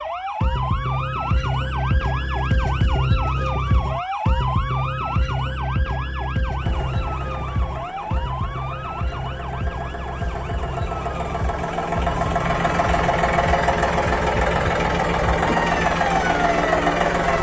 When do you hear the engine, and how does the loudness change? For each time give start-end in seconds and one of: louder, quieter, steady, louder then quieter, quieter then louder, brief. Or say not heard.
6.5-17.3 louder.